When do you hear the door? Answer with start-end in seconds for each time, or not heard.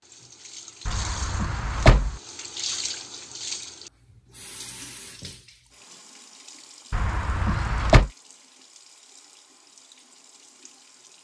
0.8-2.1, 6.9-8.1.